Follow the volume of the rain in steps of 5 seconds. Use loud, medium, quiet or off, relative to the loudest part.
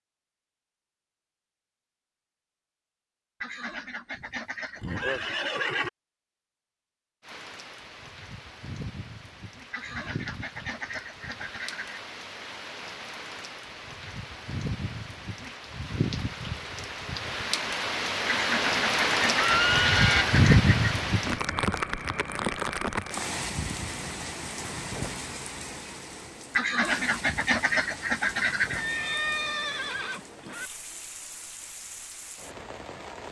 off, quiet, quiet, loud, loud, quiet, quiet.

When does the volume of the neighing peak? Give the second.
20 s.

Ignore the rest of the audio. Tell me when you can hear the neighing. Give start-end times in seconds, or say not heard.
4.2-5.9, 19.4-20.2, 28.8-30.7.